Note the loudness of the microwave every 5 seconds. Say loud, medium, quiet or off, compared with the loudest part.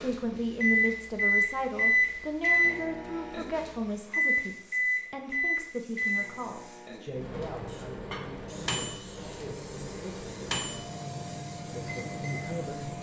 loud, medium, medium.